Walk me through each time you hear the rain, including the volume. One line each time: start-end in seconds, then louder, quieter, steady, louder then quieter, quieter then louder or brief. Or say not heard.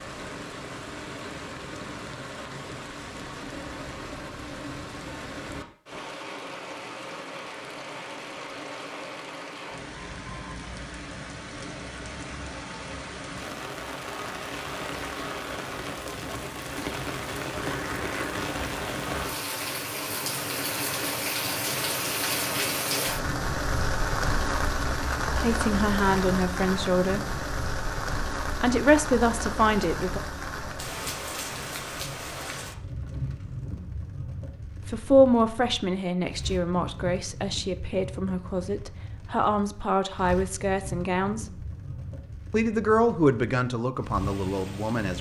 0.0-45.1 louder then quieter.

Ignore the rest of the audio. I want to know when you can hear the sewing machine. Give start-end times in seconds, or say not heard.
not heard.